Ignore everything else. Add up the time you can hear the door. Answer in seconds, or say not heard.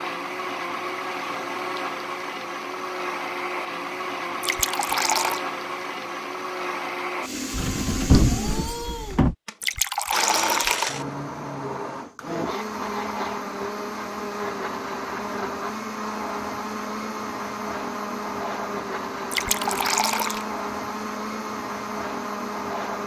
2 s.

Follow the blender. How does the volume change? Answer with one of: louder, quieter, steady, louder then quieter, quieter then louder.
steady.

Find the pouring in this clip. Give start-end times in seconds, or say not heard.
4.4-5.4, 9.6-10.9, 19.3-20.4.